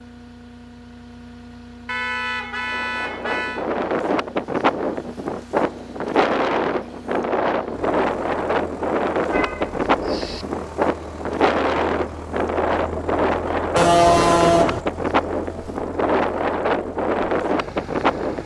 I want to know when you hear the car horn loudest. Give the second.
14 s.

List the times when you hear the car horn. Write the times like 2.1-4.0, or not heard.
1.9-3.6, 9.3-10.4, 13.8-14.8.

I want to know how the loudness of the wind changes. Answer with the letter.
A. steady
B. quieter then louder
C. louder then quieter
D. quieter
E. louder
A.